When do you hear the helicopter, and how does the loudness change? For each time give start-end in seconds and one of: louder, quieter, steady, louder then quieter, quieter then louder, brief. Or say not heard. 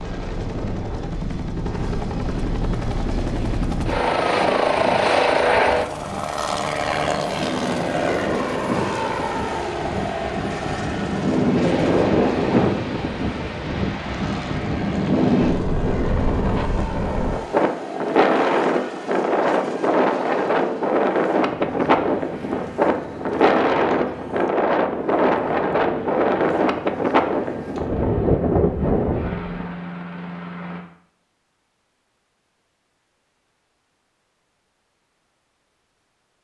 0.0-30.8 quieter.